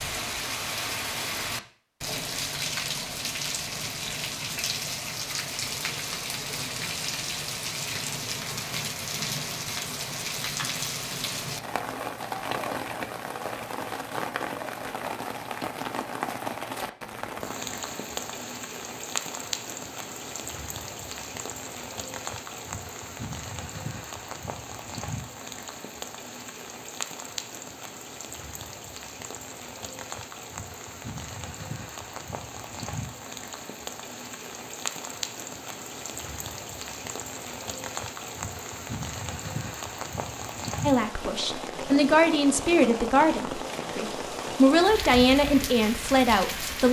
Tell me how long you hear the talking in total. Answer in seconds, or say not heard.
6 s.